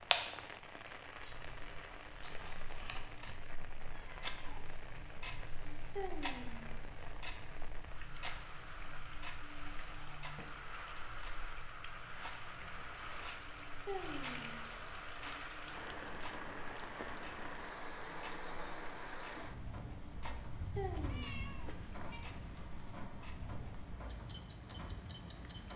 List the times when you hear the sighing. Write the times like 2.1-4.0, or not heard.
5.9-6.7, 13.8-14.6, 20.7-21.4.